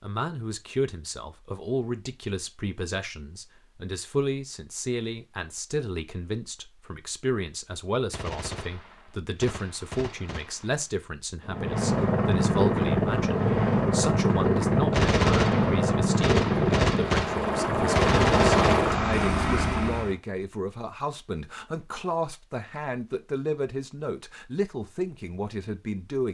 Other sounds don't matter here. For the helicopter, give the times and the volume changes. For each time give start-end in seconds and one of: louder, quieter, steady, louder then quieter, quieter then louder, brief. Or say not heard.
11.4-20.1 steady.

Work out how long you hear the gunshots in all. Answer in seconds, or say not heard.
7 s.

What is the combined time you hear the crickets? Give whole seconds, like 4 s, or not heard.
not heard.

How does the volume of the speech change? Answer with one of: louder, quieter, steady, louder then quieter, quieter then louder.
steady.